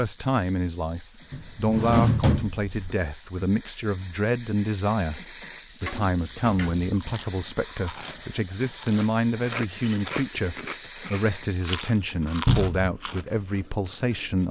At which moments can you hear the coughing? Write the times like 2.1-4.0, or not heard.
not heard.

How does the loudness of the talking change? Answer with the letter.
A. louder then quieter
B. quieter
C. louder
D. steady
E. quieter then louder
D.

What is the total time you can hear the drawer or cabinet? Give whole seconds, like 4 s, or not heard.
3 s.